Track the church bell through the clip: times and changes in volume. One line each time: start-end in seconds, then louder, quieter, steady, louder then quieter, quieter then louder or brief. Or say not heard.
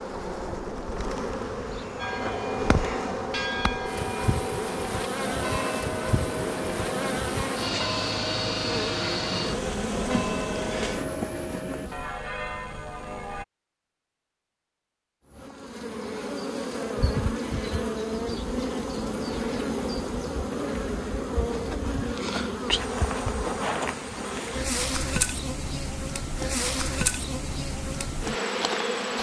1.9-13.4 steady.